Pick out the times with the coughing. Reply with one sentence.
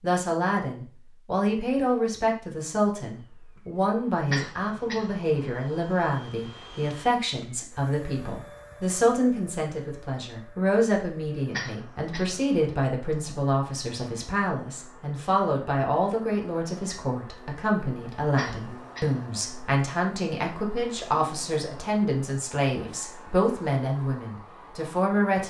You can hear the coughing from 4.3 to 5.2 s, from 11.5 to 12.4 s and from 18.4 to 19.2 s.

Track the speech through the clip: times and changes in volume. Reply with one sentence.
You can hear the speech from 0.0 to 25.4 s, at a steady volume.